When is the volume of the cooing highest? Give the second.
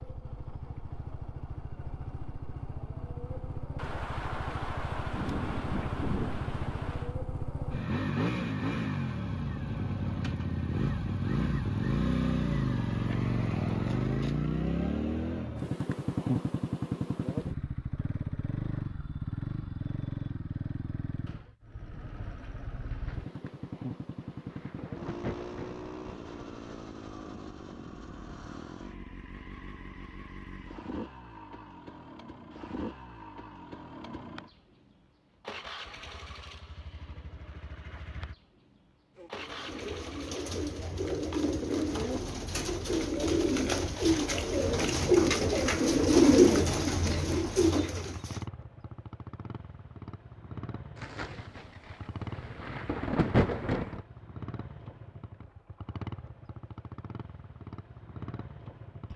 46 s.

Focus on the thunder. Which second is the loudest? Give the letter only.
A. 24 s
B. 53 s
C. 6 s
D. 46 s
B.